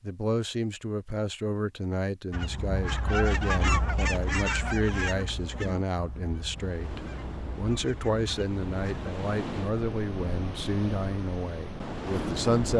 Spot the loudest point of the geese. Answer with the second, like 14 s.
4 s.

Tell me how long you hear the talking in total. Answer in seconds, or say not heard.
13 s.